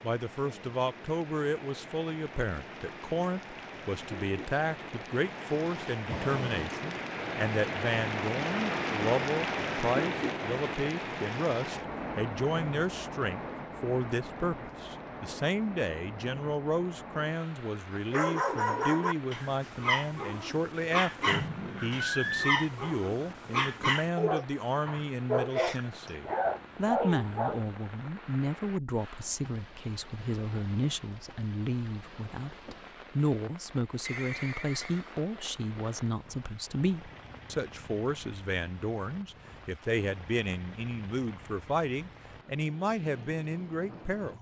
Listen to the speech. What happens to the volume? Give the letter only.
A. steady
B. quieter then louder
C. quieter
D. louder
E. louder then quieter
A.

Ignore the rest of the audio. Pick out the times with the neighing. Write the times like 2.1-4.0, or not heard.
6.1-6.8, 21.2-22.7, 34.0-35.2.